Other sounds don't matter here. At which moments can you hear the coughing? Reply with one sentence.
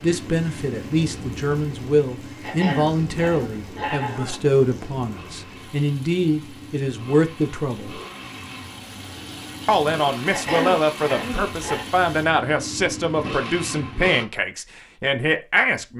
You can hear the coughing from 2.4 to 4.5 s and from 10.3 to 11.8 s.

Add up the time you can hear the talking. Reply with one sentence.
You can hear the talking for 14 seconds altogether.